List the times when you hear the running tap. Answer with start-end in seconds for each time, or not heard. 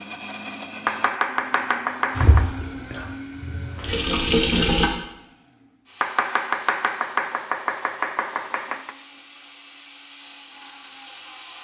2.1-4.9.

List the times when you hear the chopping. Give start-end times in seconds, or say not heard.
0.8-2.5, 6.0-8.9.